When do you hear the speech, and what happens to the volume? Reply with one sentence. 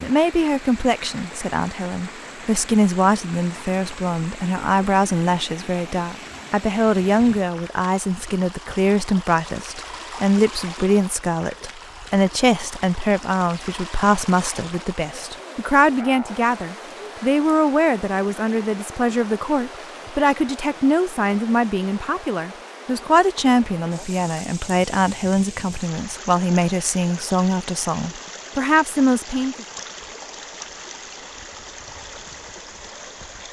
You can hear the speech from 0.0 to 29.6 s, at a steady volume.